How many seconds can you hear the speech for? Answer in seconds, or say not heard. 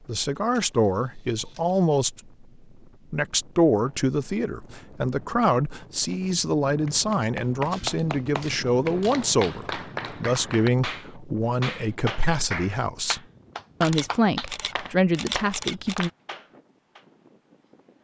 15 s.